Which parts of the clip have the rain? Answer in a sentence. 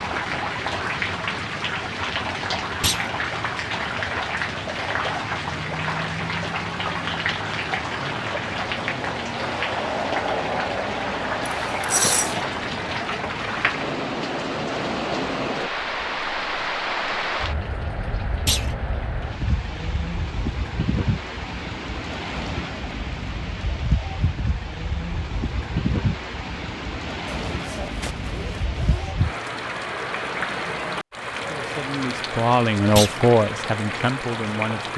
You can hear the rain from 0.0 to 34.9 s.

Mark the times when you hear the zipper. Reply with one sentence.
You can hear the zipper from 11.4 to 12.3 s and from 27.2 to 29.1 s.